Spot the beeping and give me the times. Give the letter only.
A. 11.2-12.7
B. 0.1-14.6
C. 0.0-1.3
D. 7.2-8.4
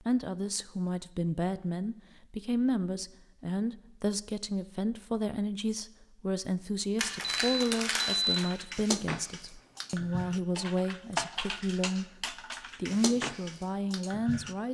D.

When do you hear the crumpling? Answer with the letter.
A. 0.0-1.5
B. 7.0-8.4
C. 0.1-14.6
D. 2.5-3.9
B.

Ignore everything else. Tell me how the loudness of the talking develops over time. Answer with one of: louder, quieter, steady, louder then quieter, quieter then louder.
steady.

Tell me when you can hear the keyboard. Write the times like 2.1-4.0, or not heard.
8.1-14.6.